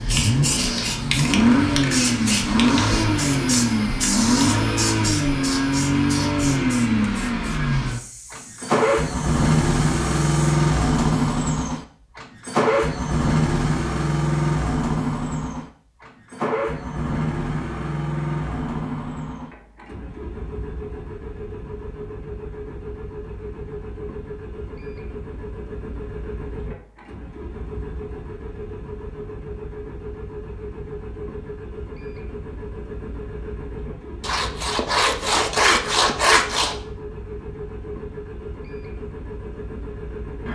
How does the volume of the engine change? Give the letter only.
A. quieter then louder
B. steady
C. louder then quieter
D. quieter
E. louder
D.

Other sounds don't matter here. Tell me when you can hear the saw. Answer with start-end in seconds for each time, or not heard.
34.2-36.8.